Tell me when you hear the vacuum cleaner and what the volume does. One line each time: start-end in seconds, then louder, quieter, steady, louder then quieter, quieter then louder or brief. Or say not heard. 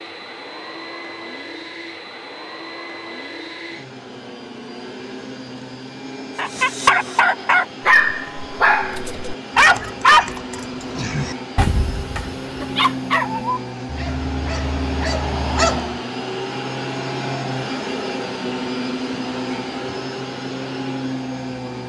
0.0-21.8 louder.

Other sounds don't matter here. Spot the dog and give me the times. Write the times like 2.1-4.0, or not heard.
6.3-15.9.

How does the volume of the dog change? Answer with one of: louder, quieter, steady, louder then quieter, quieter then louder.
quieter.